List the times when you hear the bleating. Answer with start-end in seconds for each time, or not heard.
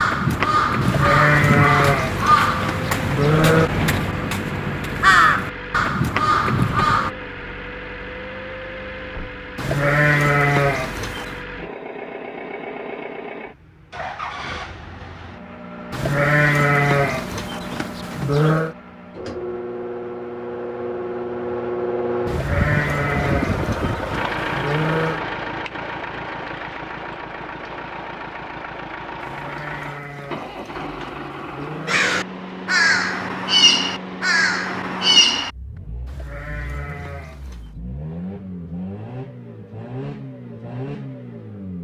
0.8-3.7, 9.6-11.4, 15.9-18.8, 22.2-25.2, 29.2-32.0, 36.0-37.8.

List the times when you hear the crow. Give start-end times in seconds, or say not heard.
0.0-7.1, 31.9-35.5.